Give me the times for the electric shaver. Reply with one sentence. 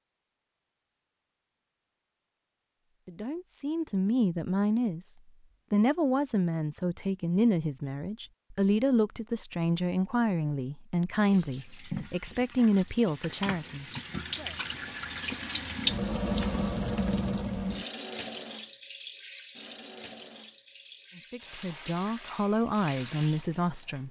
The electric shaver can't be heard in this clip.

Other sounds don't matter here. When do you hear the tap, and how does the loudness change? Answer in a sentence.
You can hear the tap from 11.2 to 24.0 s, getting louder then quieter.